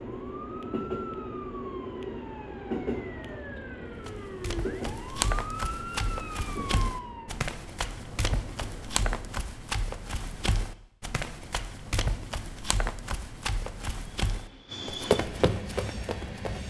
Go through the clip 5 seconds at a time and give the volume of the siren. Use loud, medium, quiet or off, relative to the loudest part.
medium, loud, off, off.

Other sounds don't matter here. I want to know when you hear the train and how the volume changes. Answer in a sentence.
You can hear the train from 0.0 to 9.4 s, getting quieter; and briefly from 14.2 to 16.6 s.